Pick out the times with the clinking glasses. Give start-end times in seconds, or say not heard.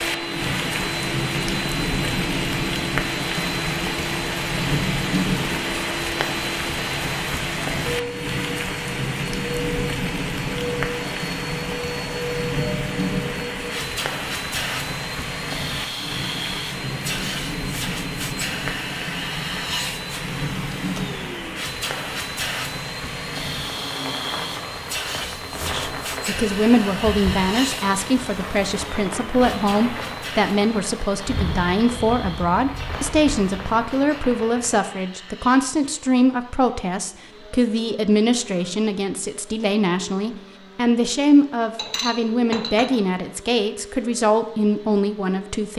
41.8-43.0.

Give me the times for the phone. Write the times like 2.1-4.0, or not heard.
not heard.